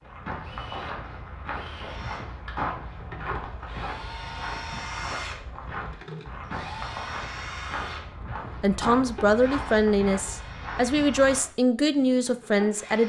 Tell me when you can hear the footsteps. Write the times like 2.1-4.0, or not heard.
0.0-11.5.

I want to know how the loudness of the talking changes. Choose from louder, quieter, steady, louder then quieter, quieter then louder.
steady.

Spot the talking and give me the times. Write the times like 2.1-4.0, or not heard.
8.6-13.0.